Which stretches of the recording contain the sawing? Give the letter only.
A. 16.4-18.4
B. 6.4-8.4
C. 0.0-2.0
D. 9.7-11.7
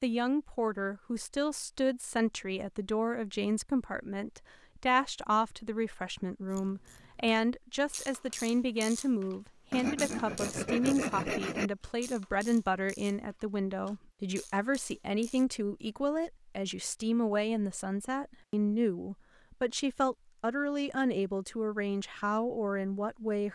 D.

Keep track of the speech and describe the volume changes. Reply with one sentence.
The loudness of the speech stays about the same.